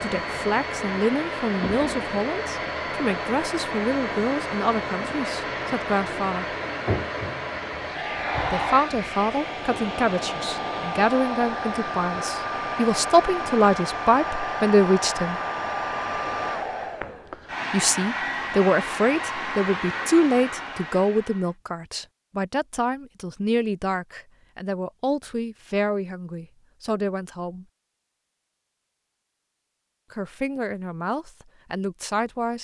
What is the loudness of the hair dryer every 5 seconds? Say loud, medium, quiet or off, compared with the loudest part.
loud, loud, loud, loud, medium, off, off.